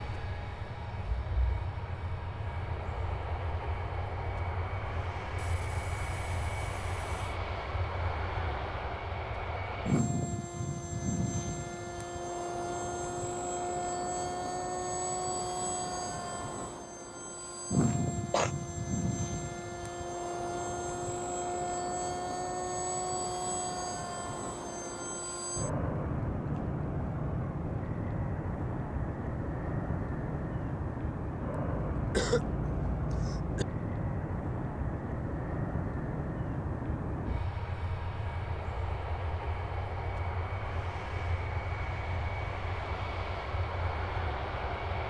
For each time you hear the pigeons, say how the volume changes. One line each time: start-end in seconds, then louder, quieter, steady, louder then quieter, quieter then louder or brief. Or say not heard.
not heard.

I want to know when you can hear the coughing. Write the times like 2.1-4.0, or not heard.
5.3-7.4, 17.9-18.5, 31.9-33.6.